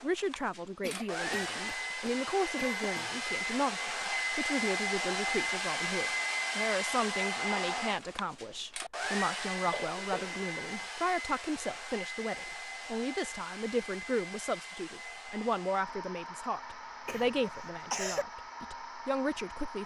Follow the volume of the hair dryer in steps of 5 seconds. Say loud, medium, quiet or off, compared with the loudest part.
loud, loud, medium, medium.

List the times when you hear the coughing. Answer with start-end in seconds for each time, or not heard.
0.8-3.2, 9.5-10.9, 17.1-18.2.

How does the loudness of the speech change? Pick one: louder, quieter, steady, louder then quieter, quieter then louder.
steady.